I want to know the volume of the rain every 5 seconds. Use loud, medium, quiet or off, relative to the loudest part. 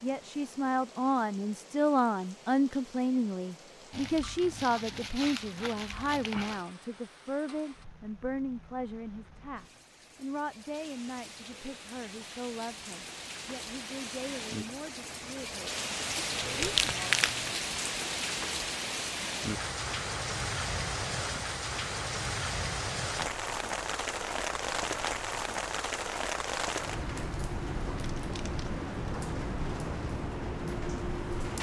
quiet, quiet, medium, loud, loud, loud, loud.